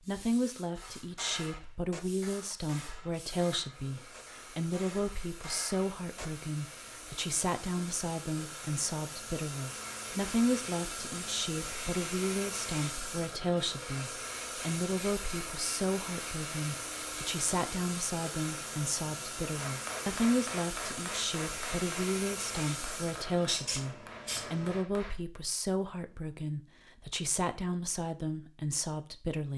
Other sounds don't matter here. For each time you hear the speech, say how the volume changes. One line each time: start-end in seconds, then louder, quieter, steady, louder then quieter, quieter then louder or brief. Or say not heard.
0.0-29.5 steady.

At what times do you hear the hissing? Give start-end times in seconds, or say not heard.
0.0-24.9.